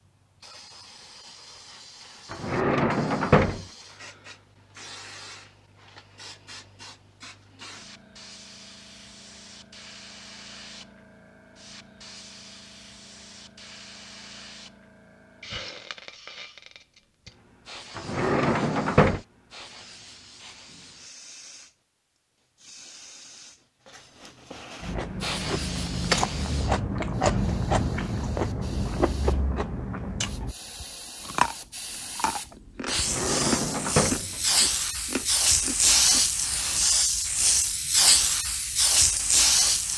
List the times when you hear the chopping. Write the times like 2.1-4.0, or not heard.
not heard.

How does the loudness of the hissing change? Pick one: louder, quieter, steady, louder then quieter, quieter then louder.
louder.